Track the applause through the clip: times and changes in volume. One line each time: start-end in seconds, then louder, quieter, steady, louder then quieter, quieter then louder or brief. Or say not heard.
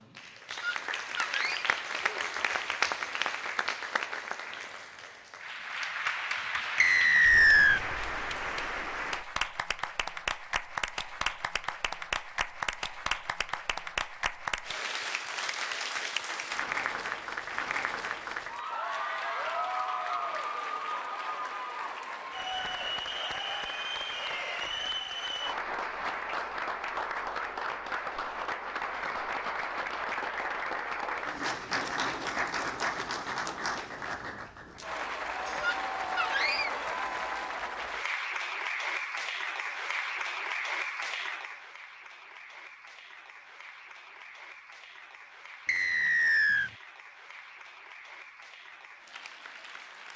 0.0-50.1 quieter.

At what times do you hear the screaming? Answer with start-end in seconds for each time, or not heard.
0.6-1.7, 35.6-36.7.